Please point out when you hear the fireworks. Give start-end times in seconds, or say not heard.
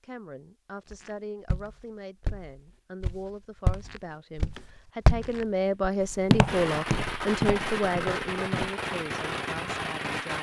6.5-10.3.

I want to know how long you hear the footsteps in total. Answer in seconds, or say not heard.
8 s.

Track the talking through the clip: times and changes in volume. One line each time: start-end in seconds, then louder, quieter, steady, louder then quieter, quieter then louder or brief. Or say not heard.
0.0-10.3 louder then quieter.